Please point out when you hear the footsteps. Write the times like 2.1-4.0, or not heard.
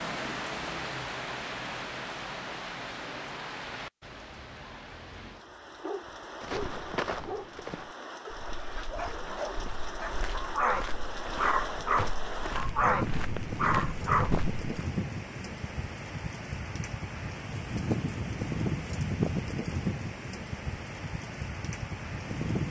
6.4-14.6.